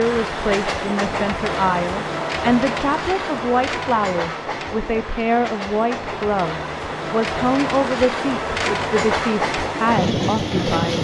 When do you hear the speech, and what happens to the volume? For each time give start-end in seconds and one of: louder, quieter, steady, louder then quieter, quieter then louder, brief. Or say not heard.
0.0-10.9 steady.